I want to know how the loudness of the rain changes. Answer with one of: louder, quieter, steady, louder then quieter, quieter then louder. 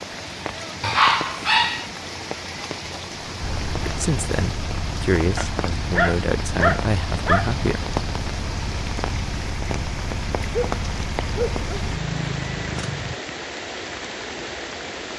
steady.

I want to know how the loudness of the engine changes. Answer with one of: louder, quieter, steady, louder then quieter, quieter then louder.
steady.